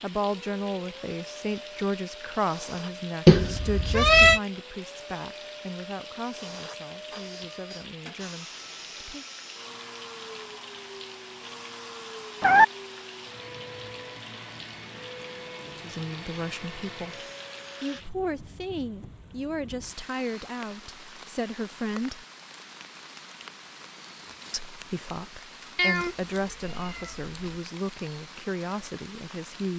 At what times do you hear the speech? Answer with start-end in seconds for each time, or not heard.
0.0-9.2, 15.8-17.2, 17.8-22.2, 24.5-29.7.